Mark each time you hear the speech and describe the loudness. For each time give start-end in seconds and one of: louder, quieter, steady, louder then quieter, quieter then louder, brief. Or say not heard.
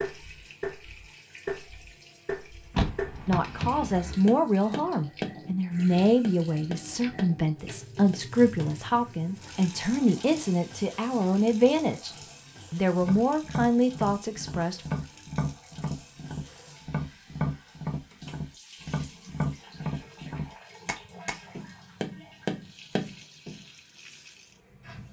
3.2-12.1 steady
12.7-14.9 brief.